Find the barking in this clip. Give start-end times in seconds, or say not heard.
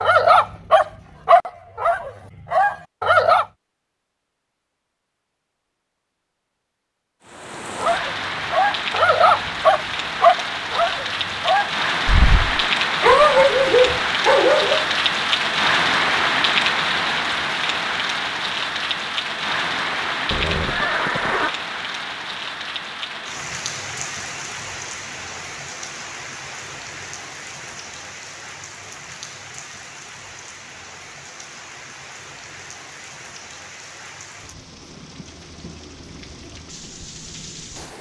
0.0-3.5, 7.8-14.9.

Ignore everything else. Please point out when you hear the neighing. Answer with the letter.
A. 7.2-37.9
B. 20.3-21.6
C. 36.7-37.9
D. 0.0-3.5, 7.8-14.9
B.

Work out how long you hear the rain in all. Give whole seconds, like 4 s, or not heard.
31 s.